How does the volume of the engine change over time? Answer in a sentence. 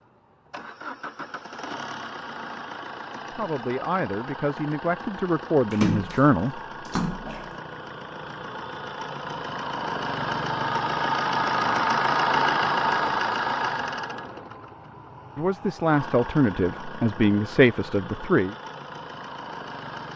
The loudness of the engine goes up, then down.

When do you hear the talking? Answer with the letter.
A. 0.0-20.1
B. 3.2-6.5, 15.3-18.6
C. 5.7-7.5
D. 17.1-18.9
B.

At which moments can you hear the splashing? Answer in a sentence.
You can hear the splashing from 5.7 to 7.5 s.